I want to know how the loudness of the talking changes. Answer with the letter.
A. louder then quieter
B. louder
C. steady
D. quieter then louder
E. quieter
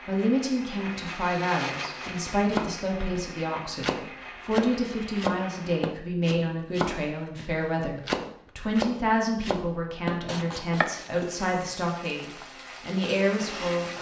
C.